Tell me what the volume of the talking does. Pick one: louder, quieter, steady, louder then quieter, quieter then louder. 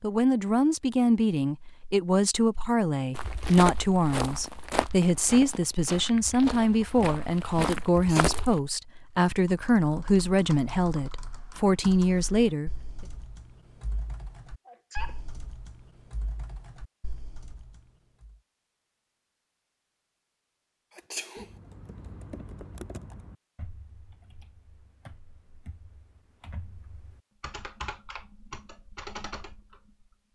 steady.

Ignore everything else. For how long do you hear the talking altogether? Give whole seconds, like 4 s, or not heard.
13 s.